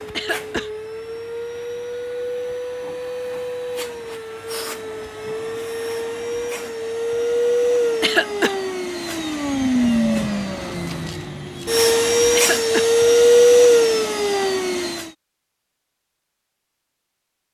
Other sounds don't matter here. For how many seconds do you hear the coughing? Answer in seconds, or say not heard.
2 s.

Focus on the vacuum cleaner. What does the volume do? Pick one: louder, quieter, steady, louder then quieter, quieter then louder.
louder.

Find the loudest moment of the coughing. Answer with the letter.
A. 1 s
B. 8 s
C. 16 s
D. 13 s
B.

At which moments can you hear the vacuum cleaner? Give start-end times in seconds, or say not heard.
0.0-15.1.